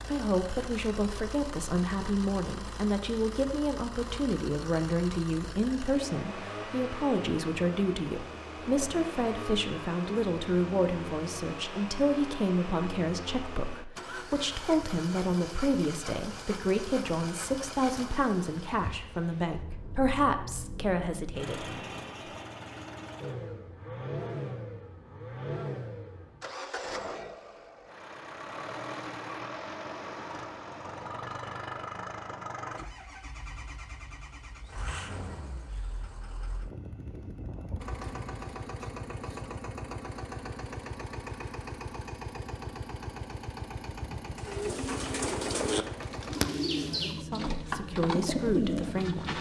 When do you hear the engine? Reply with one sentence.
You can hear the engine from 0.0 to 49.3 s.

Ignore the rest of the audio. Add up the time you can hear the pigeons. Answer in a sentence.
The pigeons can be heard for 5 seconds in total.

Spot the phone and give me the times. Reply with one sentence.
The phone can't be heard in this clip.